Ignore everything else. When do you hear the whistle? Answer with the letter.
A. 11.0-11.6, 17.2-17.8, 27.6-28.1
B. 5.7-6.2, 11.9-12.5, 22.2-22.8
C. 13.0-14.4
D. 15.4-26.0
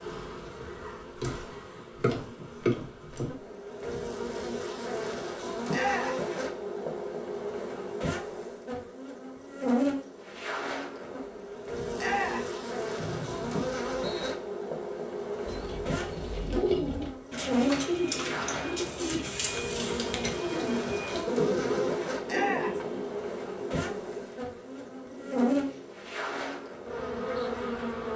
C.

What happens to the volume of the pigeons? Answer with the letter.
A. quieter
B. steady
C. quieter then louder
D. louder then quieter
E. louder
A.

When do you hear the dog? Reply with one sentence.
You can't hear the dog here.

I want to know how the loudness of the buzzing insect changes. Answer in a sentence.
The volume of the buzzing insect stays about the same.